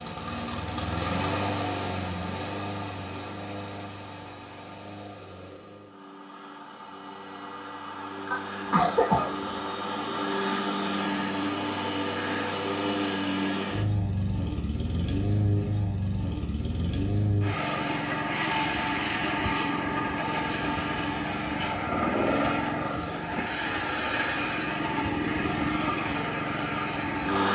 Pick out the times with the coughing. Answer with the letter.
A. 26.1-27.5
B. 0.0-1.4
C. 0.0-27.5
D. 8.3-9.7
D.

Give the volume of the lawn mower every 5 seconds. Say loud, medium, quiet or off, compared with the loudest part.
medium, medium, loud, loud, loud, loud.